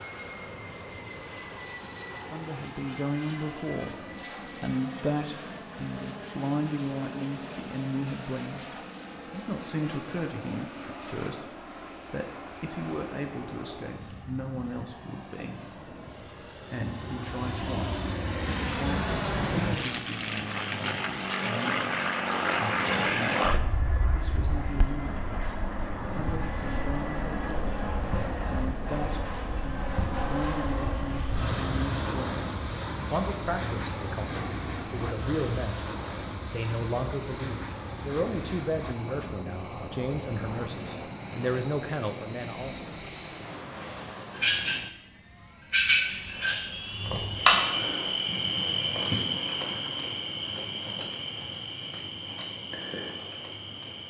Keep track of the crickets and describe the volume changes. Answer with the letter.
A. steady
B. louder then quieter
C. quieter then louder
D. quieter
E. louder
E.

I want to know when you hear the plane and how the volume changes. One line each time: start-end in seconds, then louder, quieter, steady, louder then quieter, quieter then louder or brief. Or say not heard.
0.0-54.0 louder then quieter.